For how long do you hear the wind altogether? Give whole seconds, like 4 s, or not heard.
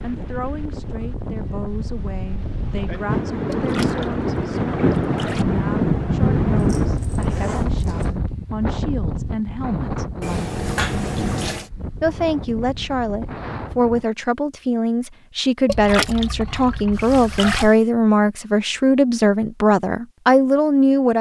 14 s.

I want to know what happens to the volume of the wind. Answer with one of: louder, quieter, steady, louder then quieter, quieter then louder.
louder then quieter.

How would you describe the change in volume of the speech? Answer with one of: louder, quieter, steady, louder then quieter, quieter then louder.
louder.